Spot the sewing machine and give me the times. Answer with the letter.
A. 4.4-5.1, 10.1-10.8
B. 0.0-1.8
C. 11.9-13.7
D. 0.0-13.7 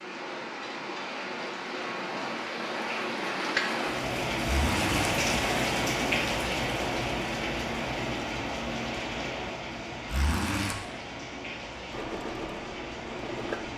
C.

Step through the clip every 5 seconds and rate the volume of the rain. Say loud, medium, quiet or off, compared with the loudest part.
loud, loud, medium.